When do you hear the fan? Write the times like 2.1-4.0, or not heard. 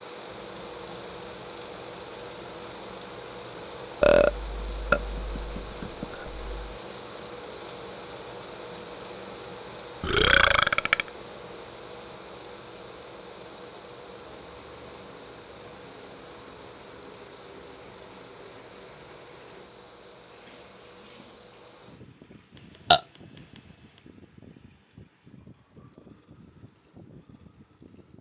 0.0-28.1.